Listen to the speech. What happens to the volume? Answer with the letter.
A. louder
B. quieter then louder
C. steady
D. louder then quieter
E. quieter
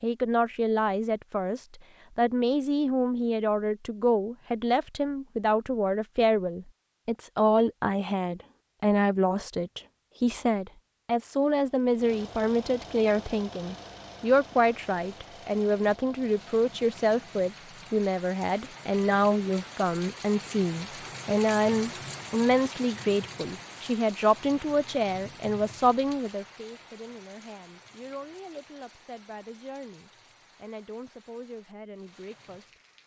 E.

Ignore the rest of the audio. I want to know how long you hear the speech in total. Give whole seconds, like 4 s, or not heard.
33 s.